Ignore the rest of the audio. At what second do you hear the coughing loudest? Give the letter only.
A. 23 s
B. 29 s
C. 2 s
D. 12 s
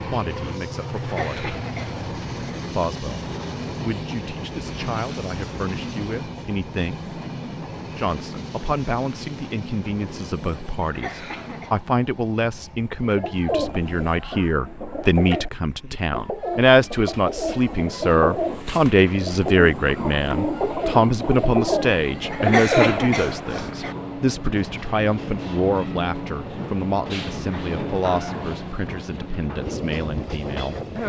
A.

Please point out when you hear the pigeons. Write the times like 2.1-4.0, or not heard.
13.0-23.8.